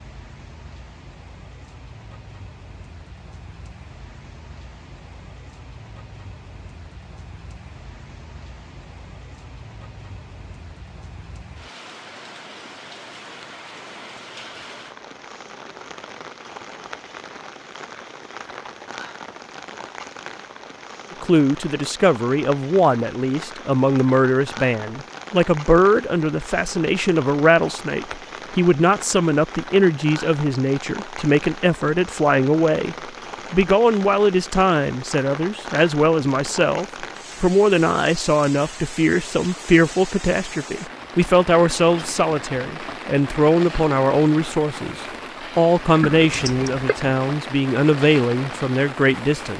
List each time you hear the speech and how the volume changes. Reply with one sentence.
You can hear the speech from 21.2 to 49.5 s, at a steady volume.